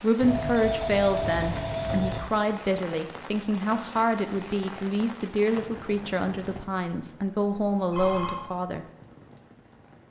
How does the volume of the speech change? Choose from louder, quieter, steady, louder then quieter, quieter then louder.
steady.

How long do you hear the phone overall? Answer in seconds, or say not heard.
3 s.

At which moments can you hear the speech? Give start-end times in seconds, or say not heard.
0.0-8.8.